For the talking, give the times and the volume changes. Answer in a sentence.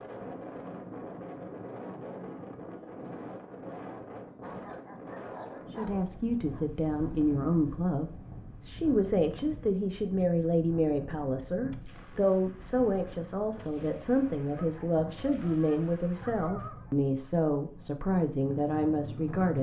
You can hear the talking from 5.7 to 19.5 s, at a steady volume.